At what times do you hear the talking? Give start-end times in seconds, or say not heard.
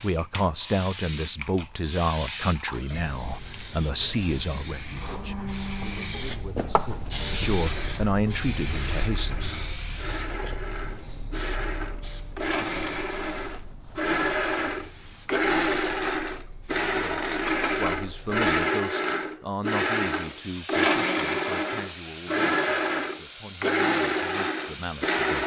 0.0-9.5, 16.8-25.4.